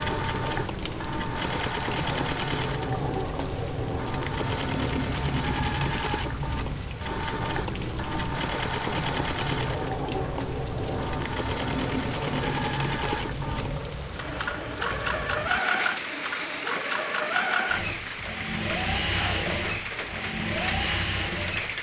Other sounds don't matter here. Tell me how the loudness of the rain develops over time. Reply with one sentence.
The loudness of the rain stays about the same.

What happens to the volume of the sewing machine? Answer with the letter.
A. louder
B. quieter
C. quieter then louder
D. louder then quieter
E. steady
E.